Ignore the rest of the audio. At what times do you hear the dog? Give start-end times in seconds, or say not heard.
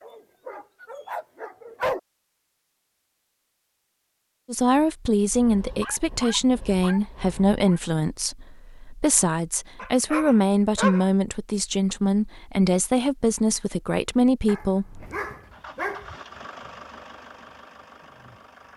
0.0-2.0, 5.3-7.8, 9.8-11.1, 14.4-16.1.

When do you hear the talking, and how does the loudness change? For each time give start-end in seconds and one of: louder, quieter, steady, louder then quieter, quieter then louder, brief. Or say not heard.
4.5-15.1 steady.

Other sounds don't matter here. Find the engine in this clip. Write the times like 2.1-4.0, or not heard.
14.8-18.7.